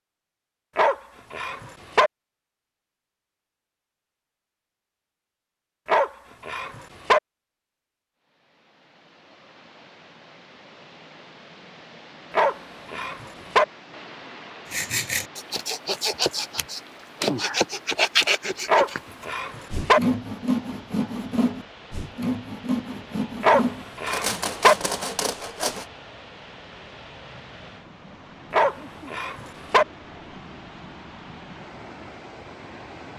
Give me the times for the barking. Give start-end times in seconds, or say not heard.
0.8-2.1, 5.8-7.2, 12.3-13.7, 18.6-20.0, 23.4-24.8, 28.5-29.9.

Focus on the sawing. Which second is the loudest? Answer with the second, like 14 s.
18 s.